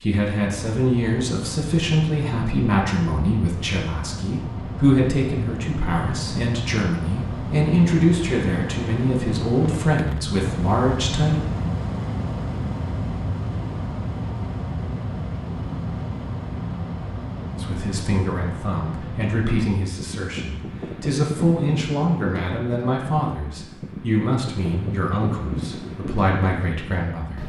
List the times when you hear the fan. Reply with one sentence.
The fan can be heard from 0.0 to 27.4 s.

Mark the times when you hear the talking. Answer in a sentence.
You can hear the talking from 0.0 to 11.3 s and from 17.6 to 27.4 s.